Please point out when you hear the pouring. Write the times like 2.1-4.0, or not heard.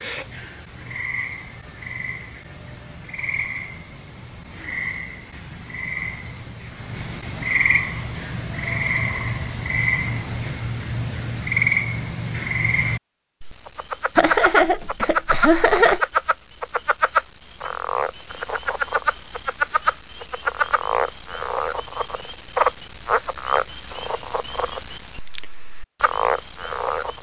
not heard.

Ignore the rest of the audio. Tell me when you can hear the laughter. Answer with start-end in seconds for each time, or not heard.
14.2-16.1.